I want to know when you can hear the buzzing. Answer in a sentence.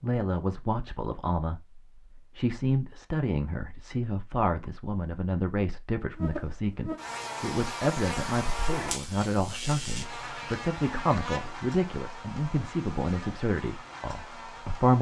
The buzzing can be heard from 6.2 to 14.9 s.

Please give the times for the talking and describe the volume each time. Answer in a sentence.
You can hear the talking from 0.0 to 14.9 s, at a steady volume.